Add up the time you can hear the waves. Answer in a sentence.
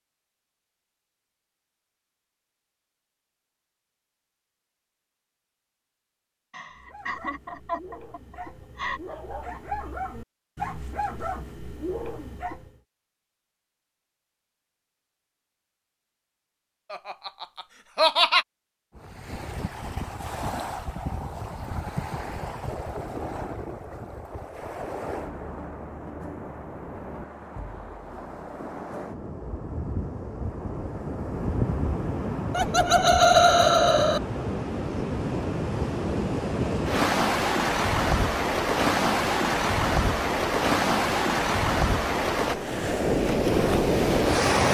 You can hear the waves for 26 seconds altogether.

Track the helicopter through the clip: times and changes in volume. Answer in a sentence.
You can't hear the helicopter here.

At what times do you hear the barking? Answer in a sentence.
The barking can be heard from 6.6 to 12.8 s.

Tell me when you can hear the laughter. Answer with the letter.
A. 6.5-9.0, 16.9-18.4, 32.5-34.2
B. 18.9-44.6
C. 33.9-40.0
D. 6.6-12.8
A.